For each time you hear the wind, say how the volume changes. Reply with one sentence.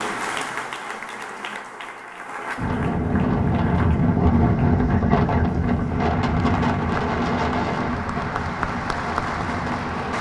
You can hear the wind from 2.5 to 10.1 s, getting quieter.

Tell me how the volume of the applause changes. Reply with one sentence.
The loudness of the applause goes down, then up.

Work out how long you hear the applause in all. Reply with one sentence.
You can hear the applause for 10 seconds altogether.